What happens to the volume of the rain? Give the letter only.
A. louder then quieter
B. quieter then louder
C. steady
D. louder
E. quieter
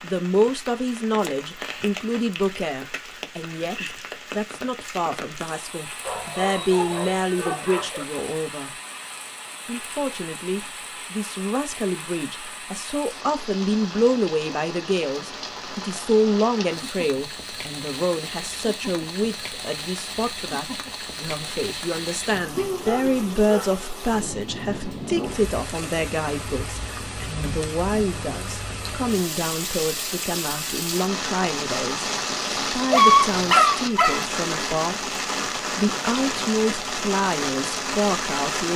D.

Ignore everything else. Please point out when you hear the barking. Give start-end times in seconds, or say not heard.
6.0-8.1, 22.8-23.8, 32.9-34.2.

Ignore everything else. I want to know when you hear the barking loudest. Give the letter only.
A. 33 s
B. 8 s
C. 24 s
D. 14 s
A.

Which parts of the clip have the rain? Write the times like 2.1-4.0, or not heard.
0.0-38.7.